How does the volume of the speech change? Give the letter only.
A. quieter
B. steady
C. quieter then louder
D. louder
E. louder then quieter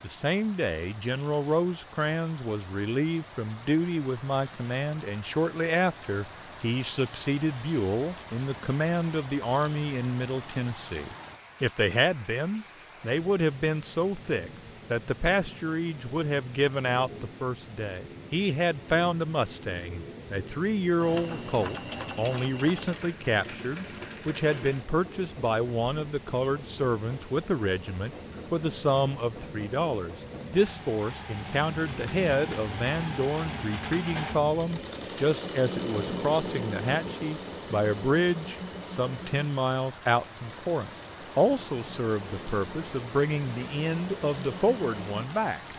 B.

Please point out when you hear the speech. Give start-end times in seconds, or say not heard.
0.0-45.7.